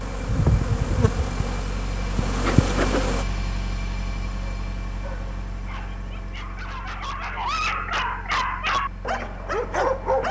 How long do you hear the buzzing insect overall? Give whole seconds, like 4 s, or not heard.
3 s.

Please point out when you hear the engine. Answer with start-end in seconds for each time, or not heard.
0.0-10.2.